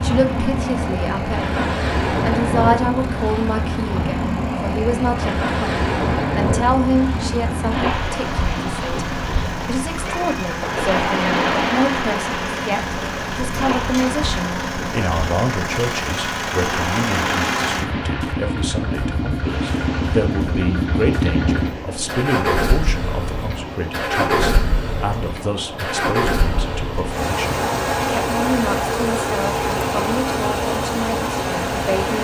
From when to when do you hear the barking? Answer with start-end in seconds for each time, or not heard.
not heard.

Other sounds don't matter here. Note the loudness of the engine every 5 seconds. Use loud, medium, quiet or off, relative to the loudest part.
quiet, medium, medium, loud, loud, loud, loud.